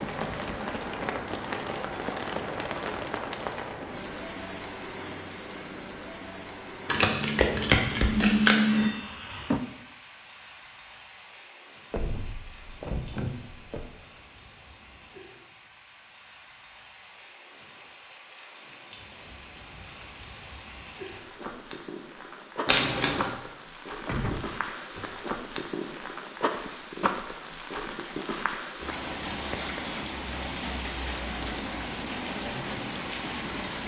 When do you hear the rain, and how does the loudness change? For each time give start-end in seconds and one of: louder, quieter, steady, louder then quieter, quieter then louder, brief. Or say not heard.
0.0-33.8 quieter then louder.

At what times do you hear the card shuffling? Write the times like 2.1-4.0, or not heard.
6.8-8.9, 22.6-23.3.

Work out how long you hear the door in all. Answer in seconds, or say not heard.
3 s.